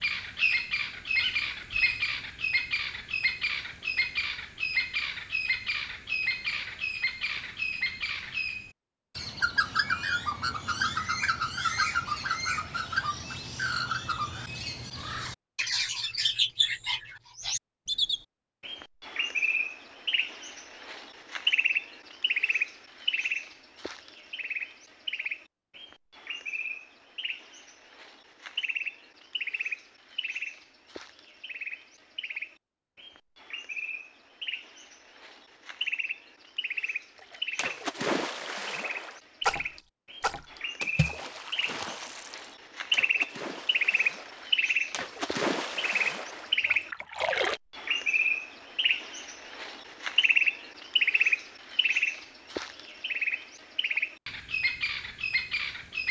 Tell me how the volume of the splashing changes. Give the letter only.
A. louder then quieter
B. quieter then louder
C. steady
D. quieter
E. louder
B.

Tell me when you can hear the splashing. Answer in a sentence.
The splashing can be heard from 37.1 to 47.6 s.